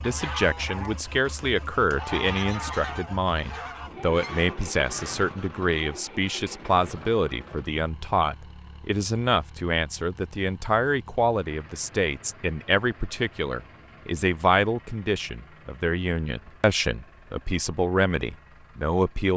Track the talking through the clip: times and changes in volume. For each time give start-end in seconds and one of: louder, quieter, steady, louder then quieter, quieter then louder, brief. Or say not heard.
0.0-19.3 steady.